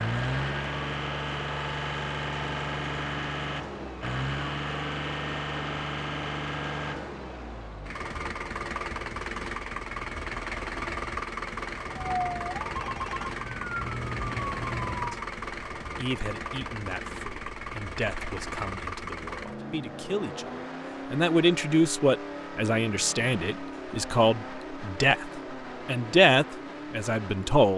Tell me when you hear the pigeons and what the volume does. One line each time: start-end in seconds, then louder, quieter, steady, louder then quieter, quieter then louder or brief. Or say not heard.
not heard.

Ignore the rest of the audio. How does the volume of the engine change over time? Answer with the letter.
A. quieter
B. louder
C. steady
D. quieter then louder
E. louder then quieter
A.